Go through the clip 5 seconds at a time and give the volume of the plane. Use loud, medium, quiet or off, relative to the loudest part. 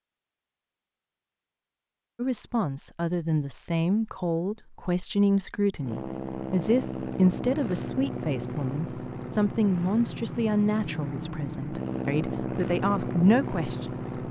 off, loud, loud.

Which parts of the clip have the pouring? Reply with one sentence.
The pouring can't be heard in this clip.